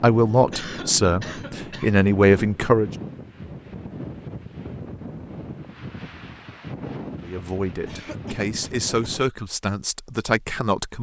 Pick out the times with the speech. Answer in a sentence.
You can hear the speech from 0.0 to 2.9 s and from 7.2 to 10.9 s.